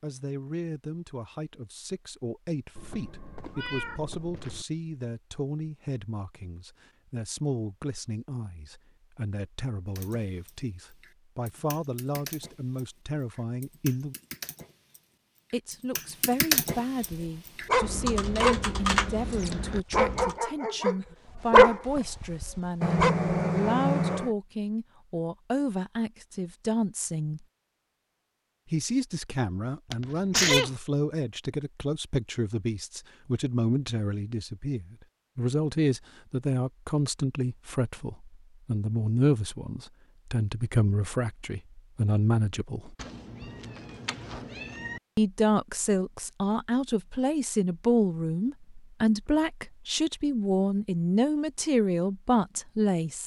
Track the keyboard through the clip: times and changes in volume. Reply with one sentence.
You can hear the keyboard from 9.9 to 20.4 s, getting louder.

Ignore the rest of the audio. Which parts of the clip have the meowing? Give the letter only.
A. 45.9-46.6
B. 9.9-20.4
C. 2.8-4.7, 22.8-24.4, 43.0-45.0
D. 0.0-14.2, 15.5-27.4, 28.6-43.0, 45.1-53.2
C.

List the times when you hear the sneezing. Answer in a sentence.
You can hear the sneezing from 29.9 to 30.7 s.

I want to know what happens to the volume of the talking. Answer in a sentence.
The volume of the talking goes up.